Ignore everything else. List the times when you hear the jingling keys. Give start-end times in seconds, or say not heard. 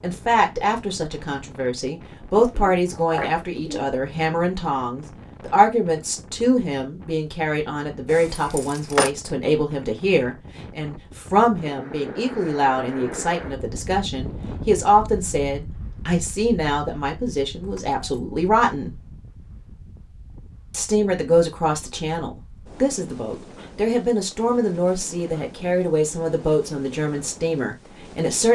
8.1-9.1, 17.6-18.2.